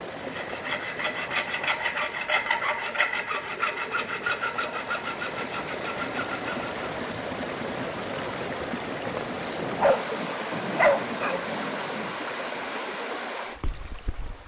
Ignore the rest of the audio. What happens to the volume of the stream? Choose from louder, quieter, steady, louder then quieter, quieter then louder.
louder.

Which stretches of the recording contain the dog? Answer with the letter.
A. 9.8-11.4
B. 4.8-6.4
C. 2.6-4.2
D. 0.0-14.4
A.